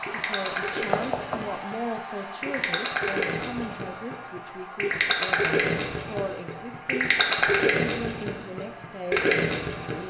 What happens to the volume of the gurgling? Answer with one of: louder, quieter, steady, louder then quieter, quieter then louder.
louder.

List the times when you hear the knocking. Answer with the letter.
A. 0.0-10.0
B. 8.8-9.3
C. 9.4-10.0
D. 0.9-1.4
D.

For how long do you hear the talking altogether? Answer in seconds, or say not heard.
10 s.